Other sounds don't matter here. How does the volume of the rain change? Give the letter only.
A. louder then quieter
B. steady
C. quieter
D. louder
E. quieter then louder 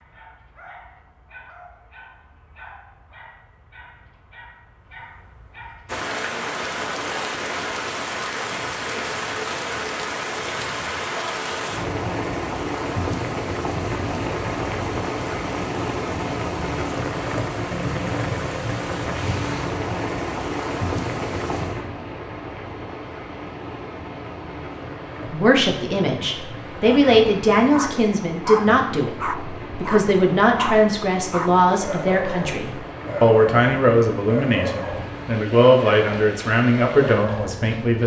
C.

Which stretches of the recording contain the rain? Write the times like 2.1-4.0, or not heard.
5.8-38.0.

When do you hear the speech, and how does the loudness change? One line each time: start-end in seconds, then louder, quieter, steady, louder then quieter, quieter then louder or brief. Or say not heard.
25.3-38.0 steady.